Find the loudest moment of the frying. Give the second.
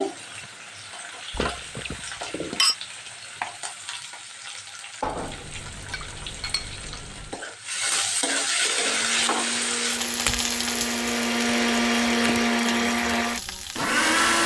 9 s.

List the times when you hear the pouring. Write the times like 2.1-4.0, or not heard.
not heard.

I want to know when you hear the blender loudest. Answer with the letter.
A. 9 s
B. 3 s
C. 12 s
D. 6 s
C.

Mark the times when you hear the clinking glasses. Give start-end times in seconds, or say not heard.
1.3-2.8, 5.0-7.4, 10.2-12.5.